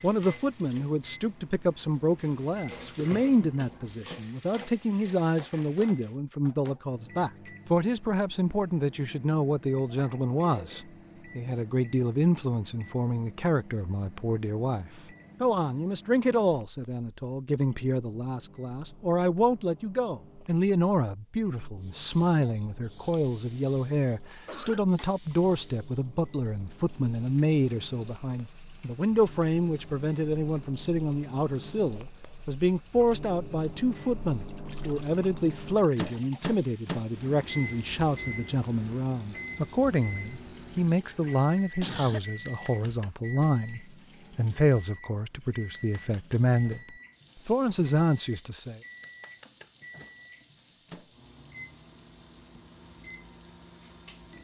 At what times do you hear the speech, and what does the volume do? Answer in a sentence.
You can hear the speech from 0.0 to 48.8 s, at a steady volume.